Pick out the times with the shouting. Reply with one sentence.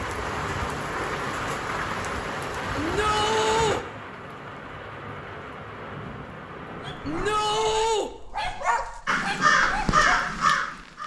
The shouting can be heard from 2.8 to 3.8 s and from 7.0 to 8.1 s.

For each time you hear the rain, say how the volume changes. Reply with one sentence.
The rain can be heard from 0.0 to 8.1 s, getting quieter.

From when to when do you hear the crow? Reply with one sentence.
The crow can be heard from 9.1 to 11.0 s.